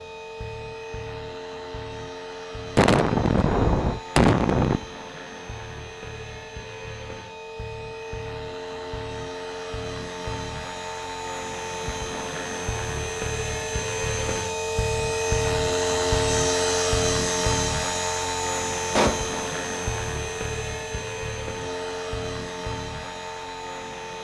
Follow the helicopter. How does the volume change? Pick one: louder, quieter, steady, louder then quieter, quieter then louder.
louder then quieter.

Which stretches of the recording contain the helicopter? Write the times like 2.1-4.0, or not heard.
0.0-24.1.